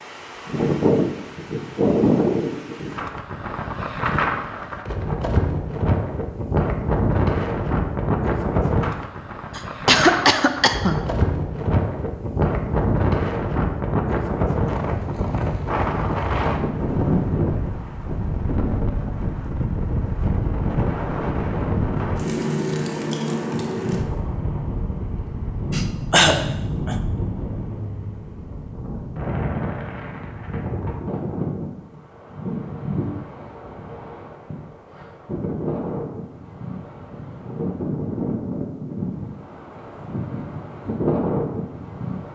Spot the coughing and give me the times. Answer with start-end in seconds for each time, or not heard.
9.6-10.9, 25.7-26.9.